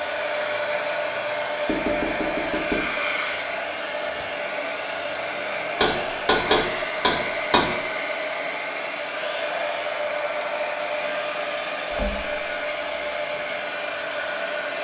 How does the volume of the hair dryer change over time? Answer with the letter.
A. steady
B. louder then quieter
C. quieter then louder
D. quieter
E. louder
A.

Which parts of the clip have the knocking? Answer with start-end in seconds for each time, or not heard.
1.6-2.9, 5.8-7.7, 11.9-12.4.